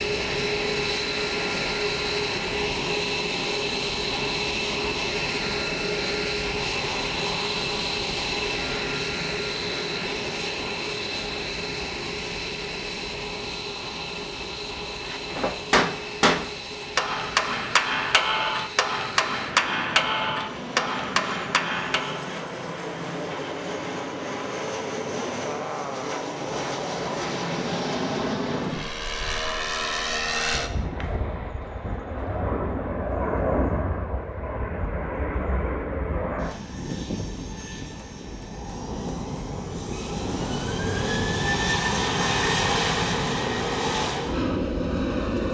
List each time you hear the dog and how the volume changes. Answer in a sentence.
You can't hear the dog here.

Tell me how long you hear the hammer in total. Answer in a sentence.
You can hear the hammer for 7 seconds altogether.